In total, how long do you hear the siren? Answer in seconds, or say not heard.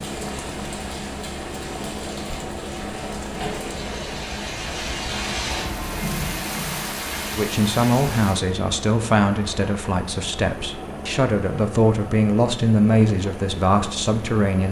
not heard.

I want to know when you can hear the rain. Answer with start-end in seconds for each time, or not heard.
0.0-8.4.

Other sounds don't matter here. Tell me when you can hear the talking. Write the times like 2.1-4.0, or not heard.
7.3-14.6.